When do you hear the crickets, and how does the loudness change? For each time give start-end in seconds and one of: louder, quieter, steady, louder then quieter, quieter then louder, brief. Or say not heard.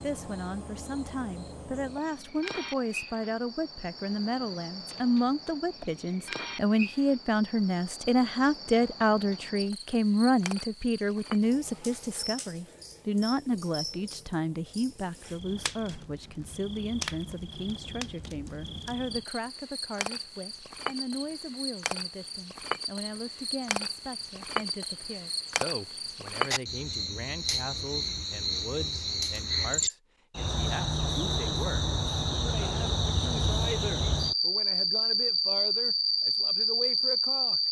0.0-37.6 louder.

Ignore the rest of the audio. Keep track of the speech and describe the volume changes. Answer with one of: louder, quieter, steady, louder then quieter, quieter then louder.
quieter.